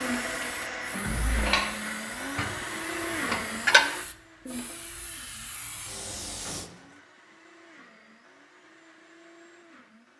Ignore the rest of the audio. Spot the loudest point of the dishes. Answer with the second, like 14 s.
4 s.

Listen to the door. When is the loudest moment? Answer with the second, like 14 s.
1 s.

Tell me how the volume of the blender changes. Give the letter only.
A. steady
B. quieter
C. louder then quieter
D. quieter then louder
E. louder
B.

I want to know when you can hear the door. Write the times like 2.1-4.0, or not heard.
1.0-1.5, 6.4-7.0.